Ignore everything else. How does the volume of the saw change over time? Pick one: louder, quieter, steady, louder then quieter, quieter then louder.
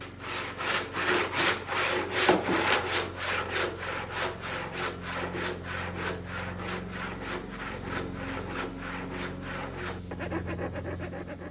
quieter.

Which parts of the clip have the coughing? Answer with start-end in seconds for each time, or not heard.
not heard.